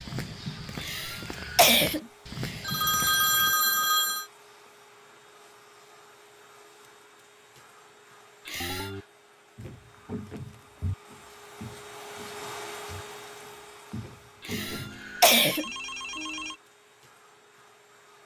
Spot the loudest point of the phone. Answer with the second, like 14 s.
3 s.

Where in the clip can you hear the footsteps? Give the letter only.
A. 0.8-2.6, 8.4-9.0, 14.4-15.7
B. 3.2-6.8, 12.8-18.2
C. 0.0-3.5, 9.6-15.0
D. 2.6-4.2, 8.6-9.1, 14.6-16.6
C.